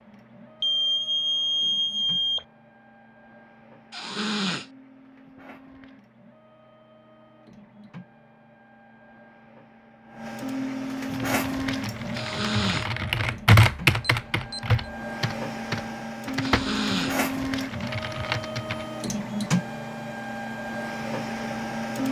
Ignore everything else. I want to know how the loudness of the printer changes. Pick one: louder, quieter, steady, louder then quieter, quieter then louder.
louder.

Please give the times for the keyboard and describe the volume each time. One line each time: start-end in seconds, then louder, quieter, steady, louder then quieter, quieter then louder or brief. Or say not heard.
11.1-18.9 louder then quieter.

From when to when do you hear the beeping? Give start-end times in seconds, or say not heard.
0.6-2.5, 13.8-14.8.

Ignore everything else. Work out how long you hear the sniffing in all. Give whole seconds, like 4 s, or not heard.
2 s.